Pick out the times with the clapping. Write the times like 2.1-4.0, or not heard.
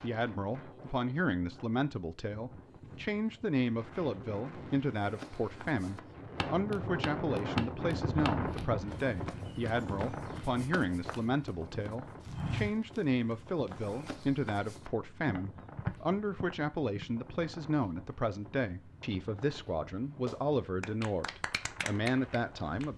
20.2-22.9.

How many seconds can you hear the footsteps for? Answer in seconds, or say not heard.
12 s.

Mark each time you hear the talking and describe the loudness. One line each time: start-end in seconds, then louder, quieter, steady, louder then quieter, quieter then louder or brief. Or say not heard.
0.0-22.9 steady.